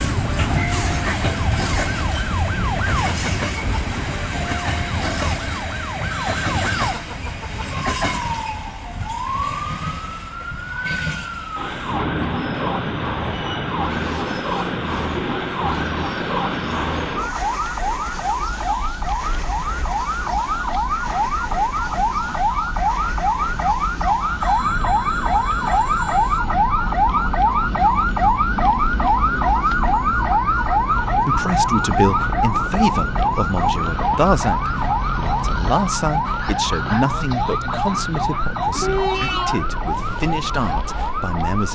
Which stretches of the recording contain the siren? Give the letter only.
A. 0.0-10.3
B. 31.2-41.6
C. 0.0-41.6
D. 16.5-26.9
C.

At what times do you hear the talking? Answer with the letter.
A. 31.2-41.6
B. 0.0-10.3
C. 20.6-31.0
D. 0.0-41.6
A.